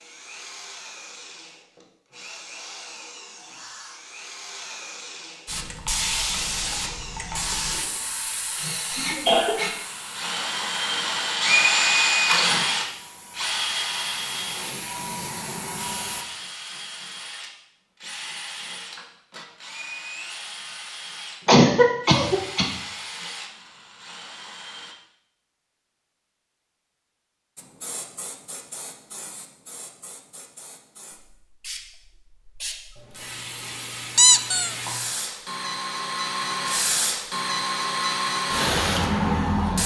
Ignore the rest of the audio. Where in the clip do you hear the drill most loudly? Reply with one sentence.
The loudest moment of the drill is at 12 seconds.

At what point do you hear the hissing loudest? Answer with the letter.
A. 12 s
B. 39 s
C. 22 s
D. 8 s
B.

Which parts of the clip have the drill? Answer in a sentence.
You can hear the drill from 0.0 to 24.9 s.